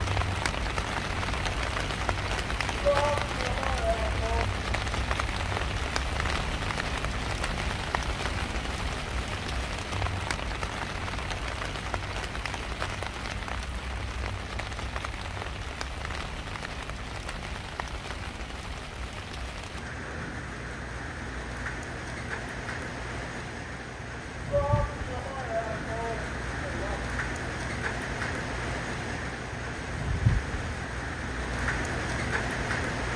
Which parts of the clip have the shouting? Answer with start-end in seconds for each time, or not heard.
2.8-4.5, 24.5-27.1.